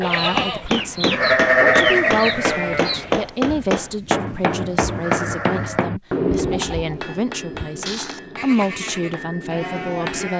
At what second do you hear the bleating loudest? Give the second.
2 s.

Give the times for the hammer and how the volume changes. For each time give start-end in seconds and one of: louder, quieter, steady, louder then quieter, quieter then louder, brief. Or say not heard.
0.3-10.3 quieter.